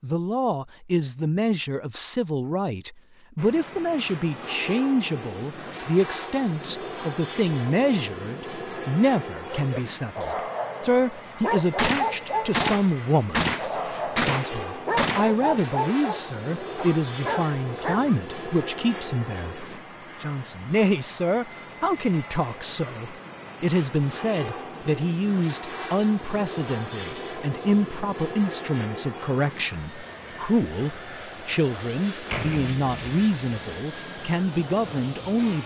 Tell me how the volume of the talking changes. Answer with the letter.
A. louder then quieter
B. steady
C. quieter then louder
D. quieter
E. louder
B.